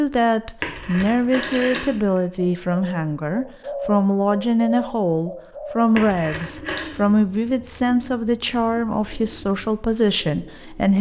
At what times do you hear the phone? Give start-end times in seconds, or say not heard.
0.6-2.2, 6.0-6.9.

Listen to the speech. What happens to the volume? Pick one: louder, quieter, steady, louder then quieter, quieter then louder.
steady.